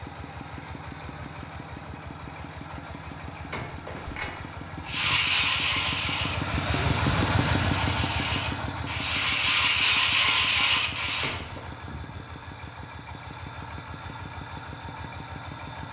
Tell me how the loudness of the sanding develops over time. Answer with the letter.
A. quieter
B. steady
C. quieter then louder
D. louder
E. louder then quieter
C.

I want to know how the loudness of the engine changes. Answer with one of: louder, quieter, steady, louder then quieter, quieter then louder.
louder then quieter.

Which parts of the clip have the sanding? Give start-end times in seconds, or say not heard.
4.8-11.4.